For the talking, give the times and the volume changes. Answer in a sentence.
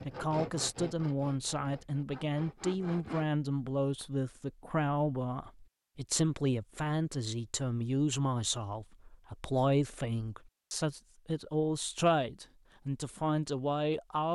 You can hear the talking from 0.0 to 14.2 s, at a steady volume.